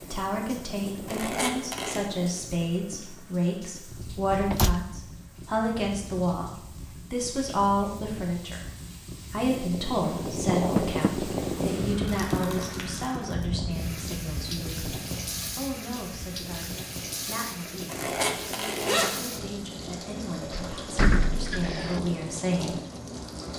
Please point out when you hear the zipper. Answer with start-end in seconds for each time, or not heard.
1.1-2.0, 17.9-19.2.